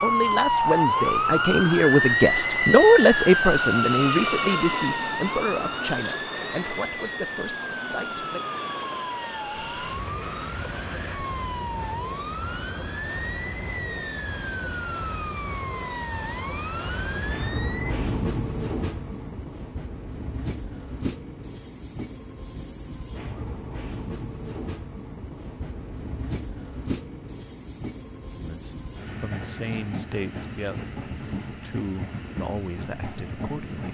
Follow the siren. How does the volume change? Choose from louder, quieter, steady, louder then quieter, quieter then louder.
quieter.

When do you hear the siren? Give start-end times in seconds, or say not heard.
0.0-17.9.